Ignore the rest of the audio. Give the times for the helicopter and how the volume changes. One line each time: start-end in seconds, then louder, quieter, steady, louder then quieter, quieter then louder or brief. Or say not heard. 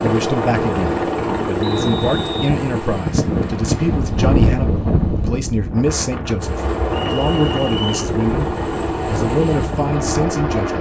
0.0-4.3 quieter
6.4-10.7 steady.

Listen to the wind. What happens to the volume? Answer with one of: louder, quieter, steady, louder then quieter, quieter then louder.
louder then quieter.